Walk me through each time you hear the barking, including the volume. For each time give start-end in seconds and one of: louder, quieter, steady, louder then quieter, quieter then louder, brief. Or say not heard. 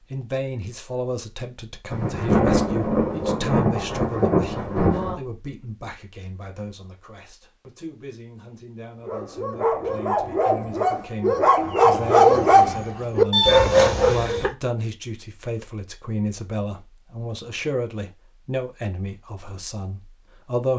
9.1-14.5 louder.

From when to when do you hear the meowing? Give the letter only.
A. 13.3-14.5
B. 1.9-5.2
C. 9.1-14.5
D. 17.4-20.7
A.